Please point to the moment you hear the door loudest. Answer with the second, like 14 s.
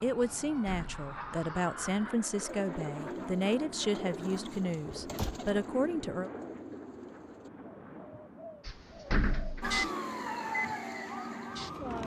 9 s.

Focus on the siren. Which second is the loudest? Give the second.
10 s.